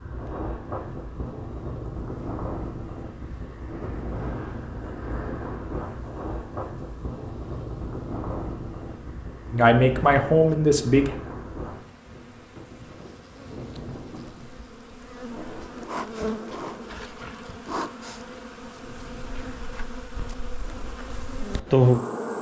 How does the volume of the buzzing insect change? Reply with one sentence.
The volume of the buzzing insect goes up.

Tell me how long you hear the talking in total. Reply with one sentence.
You can hear the talking for 2 seconds altogether.